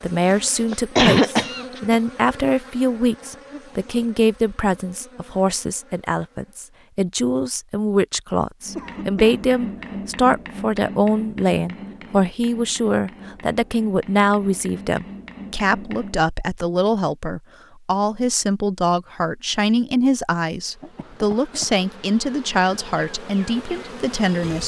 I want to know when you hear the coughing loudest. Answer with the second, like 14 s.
1 s.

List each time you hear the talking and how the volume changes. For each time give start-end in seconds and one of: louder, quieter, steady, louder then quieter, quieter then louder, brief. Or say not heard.
0.0-24.6 steady.